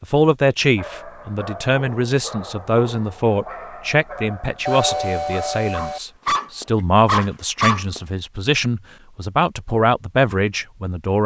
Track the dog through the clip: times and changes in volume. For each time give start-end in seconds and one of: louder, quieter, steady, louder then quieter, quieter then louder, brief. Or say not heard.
0.8-8.0 louder.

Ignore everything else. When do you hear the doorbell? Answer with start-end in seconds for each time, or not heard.
4.7-6.0.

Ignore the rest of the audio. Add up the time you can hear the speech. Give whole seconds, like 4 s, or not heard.
11 s.